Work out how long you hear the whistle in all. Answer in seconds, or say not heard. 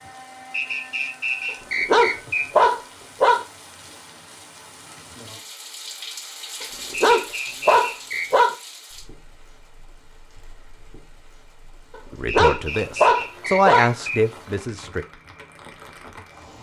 5 s.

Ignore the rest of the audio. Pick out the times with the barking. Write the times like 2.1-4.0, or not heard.
1.8-3.5, 6.6-8.6, 11.9-13.9.